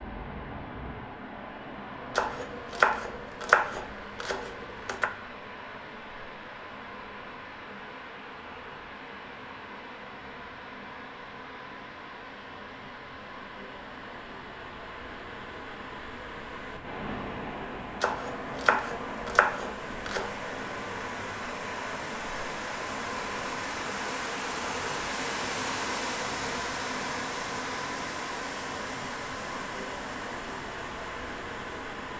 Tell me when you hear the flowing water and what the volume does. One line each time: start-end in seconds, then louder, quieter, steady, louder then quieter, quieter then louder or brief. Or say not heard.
0.0-32.1 louder.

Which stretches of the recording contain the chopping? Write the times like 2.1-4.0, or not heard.
2.1-5.1, 18.0-20.4.